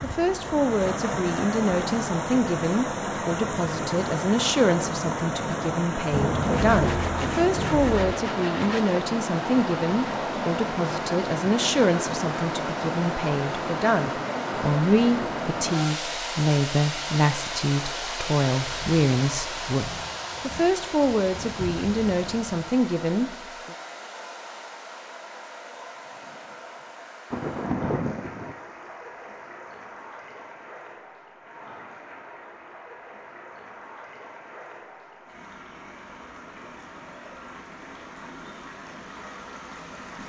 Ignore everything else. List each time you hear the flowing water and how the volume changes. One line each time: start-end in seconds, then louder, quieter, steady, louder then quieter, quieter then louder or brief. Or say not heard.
0.0-40.2 quieter.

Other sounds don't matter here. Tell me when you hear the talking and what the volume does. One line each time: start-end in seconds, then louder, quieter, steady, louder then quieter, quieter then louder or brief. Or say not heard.
0.0-23.8 steady.